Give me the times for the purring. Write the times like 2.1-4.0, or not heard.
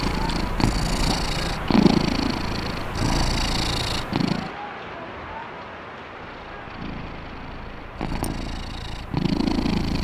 0.0-4.5, 6.2-9.9.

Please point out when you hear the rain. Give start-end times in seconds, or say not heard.
0.0-9.9.